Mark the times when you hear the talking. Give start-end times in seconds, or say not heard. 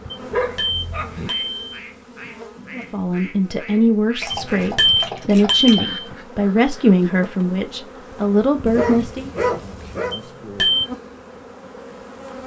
2.9-9.3.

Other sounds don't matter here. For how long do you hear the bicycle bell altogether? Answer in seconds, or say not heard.
4 s.